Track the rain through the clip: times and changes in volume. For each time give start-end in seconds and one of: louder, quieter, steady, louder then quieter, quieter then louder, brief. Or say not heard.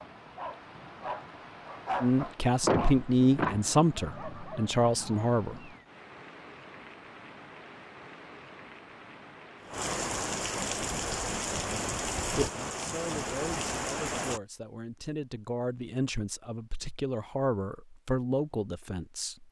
0.0-14.4 louder.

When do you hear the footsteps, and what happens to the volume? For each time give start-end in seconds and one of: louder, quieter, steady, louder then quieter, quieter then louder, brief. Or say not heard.
not heard.